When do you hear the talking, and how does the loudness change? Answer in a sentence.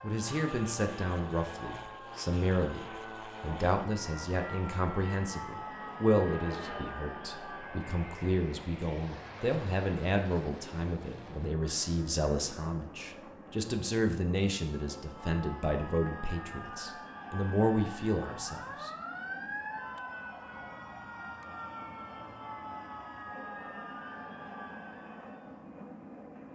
You can hear the talking from 0.0 to 18.9 s, at a steady volume.